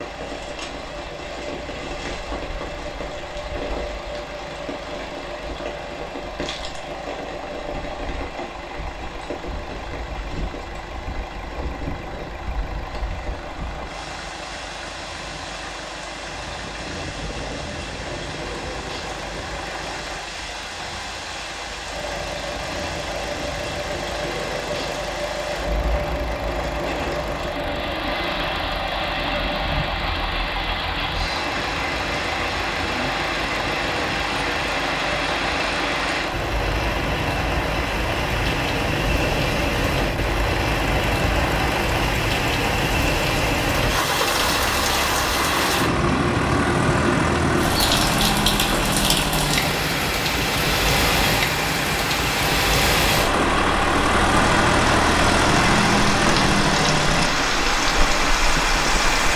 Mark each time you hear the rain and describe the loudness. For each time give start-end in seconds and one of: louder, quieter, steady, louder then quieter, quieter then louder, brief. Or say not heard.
0.0-59.3 louder.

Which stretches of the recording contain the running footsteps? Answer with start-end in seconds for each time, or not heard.
not heard.